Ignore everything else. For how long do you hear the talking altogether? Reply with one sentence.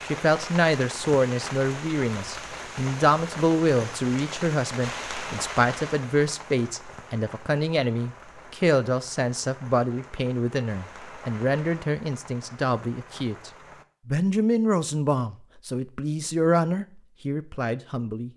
You can hear the talking for 18 seconds altogether.